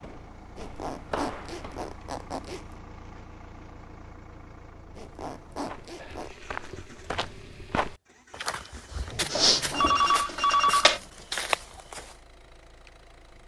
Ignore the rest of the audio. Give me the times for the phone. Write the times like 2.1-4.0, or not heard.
9.3-11.0.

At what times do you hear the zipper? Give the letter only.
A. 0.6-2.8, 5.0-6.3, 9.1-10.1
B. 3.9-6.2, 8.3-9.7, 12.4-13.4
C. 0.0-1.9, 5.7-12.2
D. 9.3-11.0
A.